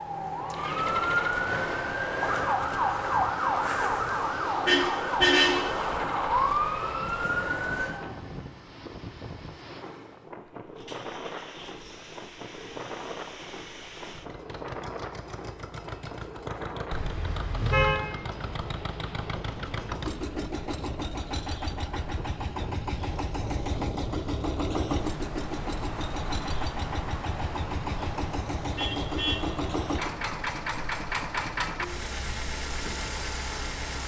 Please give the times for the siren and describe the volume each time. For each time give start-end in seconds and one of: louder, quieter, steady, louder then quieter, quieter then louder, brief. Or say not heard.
0.0-8.2 steady.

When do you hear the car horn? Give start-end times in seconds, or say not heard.
4.7-5.7, 16.9-18.0, 28.7-29.4.